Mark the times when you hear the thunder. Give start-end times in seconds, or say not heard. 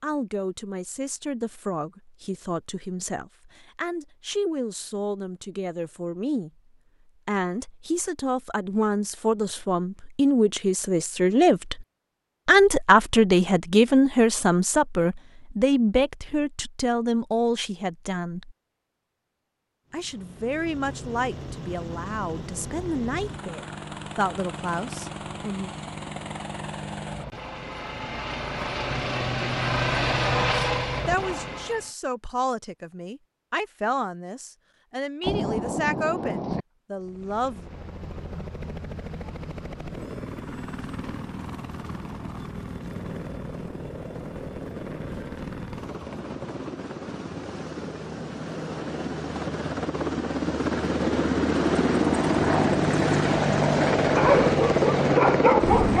35.2-36.6.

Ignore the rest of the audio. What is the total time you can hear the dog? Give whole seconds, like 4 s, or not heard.
2 s.